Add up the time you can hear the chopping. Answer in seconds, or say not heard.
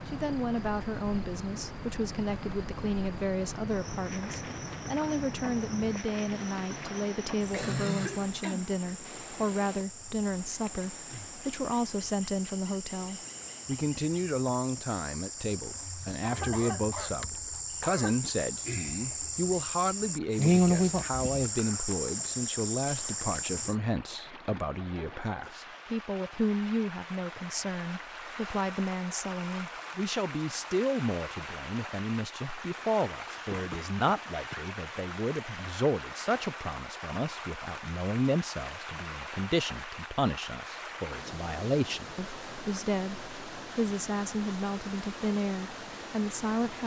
not heard.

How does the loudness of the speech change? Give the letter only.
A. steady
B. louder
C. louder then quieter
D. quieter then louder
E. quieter
A.